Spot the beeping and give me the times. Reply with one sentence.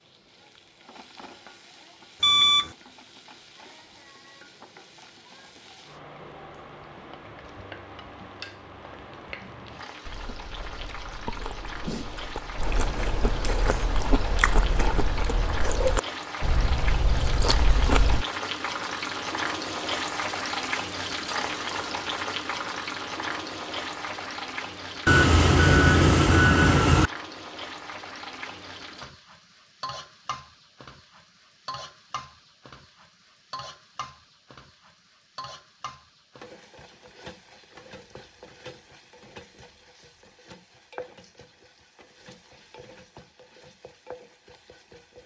You can hear the beeping from 2.2 to 2.8 s and from 25.1 to 27.1 s.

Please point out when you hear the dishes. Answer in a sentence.
The dishes can't be heard in this clip.